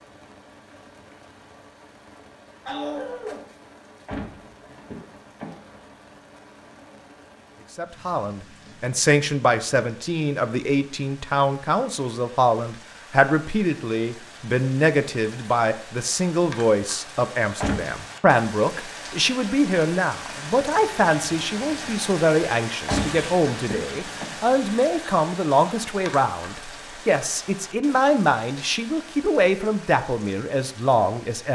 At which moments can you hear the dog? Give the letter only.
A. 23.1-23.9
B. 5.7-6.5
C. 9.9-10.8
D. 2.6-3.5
D.